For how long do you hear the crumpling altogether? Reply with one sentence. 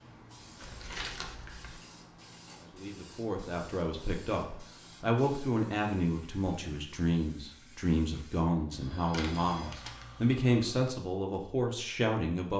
You can hear the crumpling for 2 seconds altogether.